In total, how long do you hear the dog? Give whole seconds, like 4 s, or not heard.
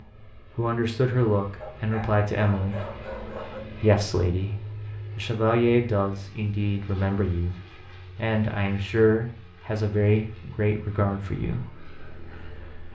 2 s.